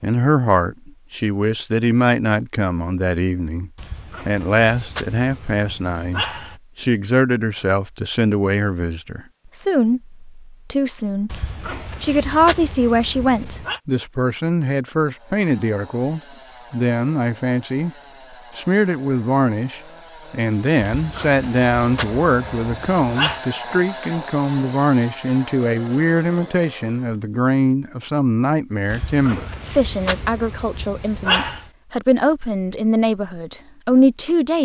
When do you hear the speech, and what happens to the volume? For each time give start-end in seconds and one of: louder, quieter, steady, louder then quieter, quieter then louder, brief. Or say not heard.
0.0-17.9 steady
18.6-34.6 steady.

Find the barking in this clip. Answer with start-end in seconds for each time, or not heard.
3.8-6.6, 11.3-13.8, 20.8-23.4, 28.9-31.7.